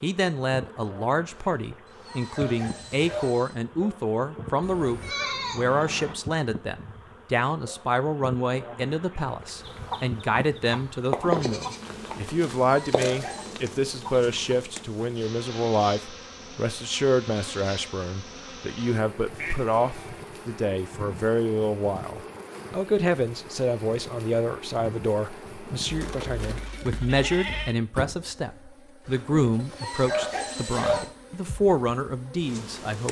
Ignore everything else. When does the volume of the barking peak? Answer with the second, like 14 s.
31 s.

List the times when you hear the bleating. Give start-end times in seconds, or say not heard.
4.6-6.2, 11.2-12.4, 19.4-20.2, 25.9-27.8.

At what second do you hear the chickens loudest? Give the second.
11 s.